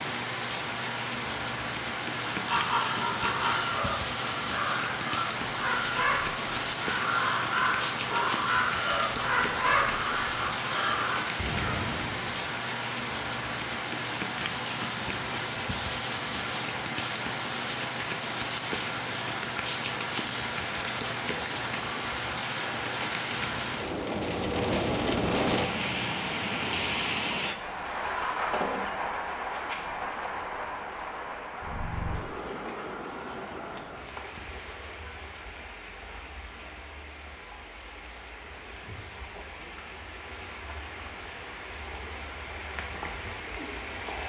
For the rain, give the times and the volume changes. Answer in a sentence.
You can hear the rain from 0.0 to 44.2 s, getting quieter.